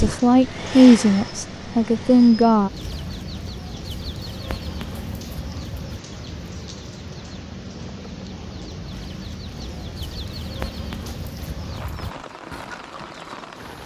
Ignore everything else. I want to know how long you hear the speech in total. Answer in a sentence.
The speech can be heard for 3 seconds in total.